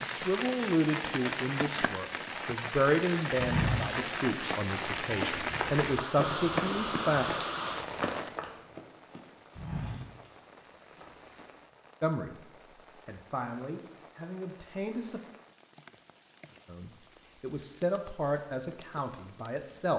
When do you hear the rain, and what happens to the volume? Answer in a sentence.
You can hear the rain from 0.0 to 19.9 s, getting quieter.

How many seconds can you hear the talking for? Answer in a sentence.
You can hear the talking for 14 seconds altogether.